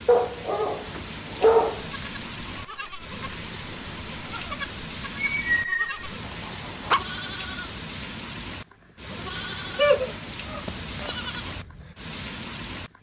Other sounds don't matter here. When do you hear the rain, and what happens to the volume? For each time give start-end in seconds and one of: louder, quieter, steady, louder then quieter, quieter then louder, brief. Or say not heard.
0.0-12.9 steady.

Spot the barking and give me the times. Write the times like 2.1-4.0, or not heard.
0.1-1.9, 5.2-7.0, 9.8-11.1.